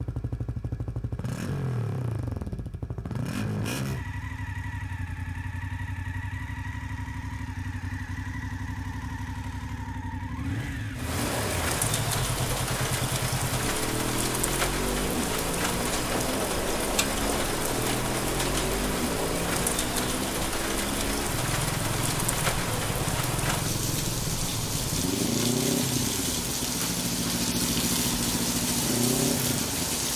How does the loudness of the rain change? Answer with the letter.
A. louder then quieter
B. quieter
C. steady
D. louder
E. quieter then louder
C.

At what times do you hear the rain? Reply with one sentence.
The rain can be heard from 10.9 to 30.1 s.